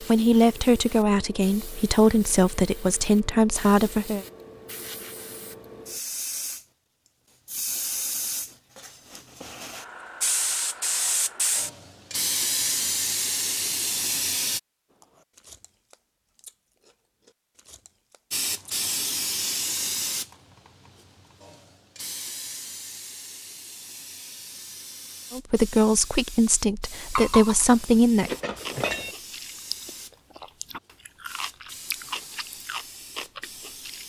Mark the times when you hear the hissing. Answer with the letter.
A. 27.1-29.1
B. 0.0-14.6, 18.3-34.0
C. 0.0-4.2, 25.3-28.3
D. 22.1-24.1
B.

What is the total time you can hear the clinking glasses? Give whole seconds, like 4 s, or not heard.
2 s.